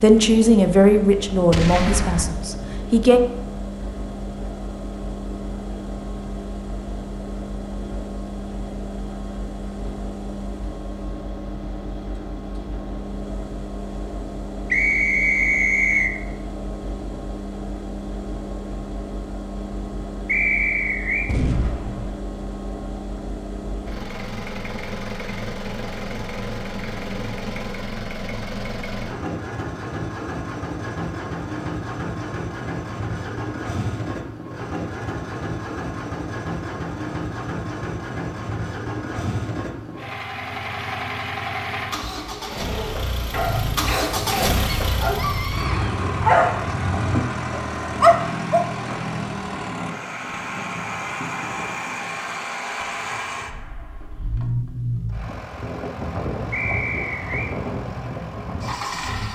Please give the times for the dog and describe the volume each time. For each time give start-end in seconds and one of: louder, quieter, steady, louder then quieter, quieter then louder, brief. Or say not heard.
42.5-48.6 louder.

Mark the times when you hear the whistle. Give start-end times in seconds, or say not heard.
14.7-16.1, 20.2-21.3, 56.5-57.5.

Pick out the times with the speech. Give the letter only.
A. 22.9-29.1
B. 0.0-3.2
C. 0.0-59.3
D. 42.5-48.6
B.